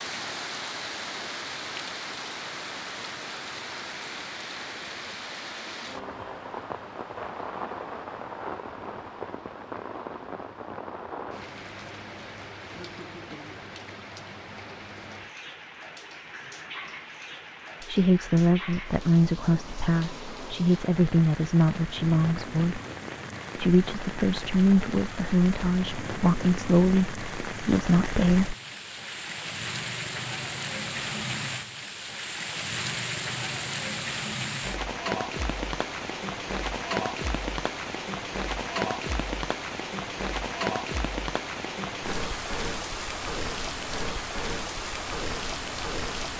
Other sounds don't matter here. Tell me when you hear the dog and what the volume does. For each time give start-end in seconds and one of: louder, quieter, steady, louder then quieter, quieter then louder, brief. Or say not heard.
not heard.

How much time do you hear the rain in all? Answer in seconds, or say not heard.
46 s.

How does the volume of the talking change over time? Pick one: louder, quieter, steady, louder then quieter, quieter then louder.
steady.